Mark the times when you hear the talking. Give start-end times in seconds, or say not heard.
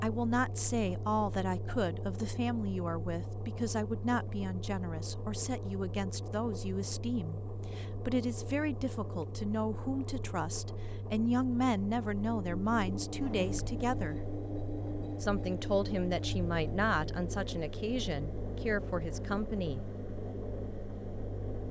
0.0-14.2, 15.2-19.8.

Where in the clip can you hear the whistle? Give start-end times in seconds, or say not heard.
not heard.